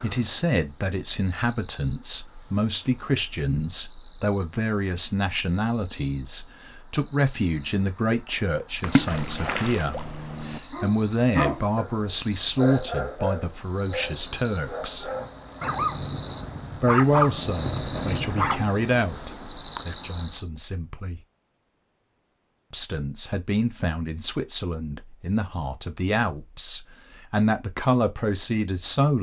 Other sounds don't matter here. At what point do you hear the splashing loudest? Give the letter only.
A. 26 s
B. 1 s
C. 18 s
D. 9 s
D.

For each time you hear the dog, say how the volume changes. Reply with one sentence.
The dog can be heard from 10.7 to 18.8 s, getting quieter then louder.